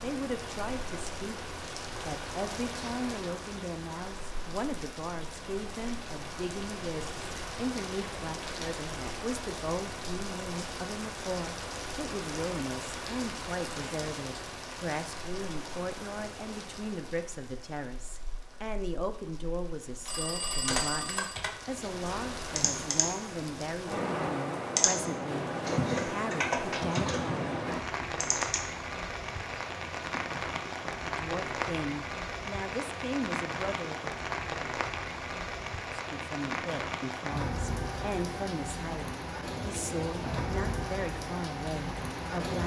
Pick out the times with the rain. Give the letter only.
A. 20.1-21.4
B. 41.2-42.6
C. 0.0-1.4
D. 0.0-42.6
D.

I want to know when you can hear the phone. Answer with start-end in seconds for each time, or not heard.
20.1-21.4.